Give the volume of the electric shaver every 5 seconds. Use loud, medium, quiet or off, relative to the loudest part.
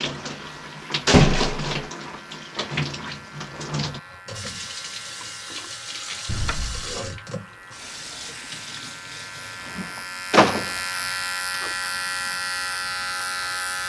quiet, quiet, loud.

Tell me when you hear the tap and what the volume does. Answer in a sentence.
You can hear the tap from 0.0 to 13.8 s, getting quieter.